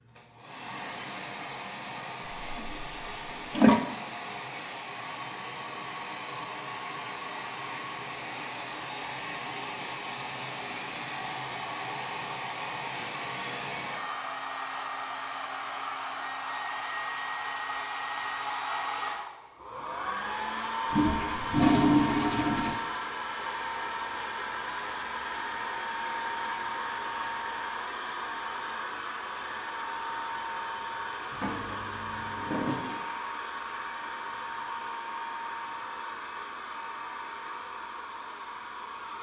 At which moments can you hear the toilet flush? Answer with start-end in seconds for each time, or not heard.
2.5-3.8, 20.9-22.8, 31.3-33.0.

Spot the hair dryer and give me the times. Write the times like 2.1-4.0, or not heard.
0.0-39.1.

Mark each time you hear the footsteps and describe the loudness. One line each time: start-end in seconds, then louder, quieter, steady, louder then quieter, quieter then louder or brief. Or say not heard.
not heard.